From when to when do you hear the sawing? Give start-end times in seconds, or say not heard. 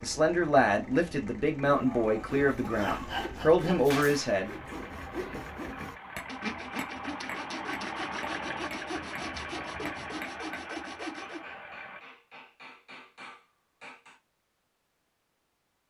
2.2-11.4.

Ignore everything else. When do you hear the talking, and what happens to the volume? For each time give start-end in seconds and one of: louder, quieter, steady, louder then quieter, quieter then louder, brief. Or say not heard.
0.0-4.5 quieter then louder.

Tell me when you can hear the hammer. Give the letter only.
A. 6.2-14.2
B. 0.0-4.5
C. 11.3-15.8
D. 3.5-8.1
A.